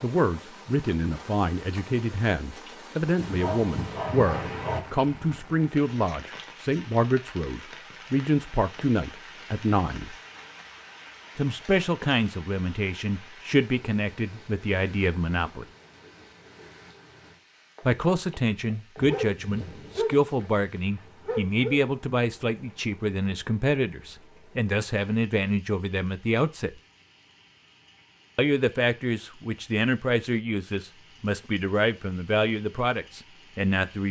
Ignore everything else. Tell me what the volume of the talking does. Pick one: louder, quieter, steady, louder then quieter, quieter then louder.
steady.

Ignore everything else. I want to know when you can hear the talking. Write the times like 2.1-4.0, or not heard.
0.0-10.2, 11.3-15.7, 17.8-26.8, 28.4-34.0.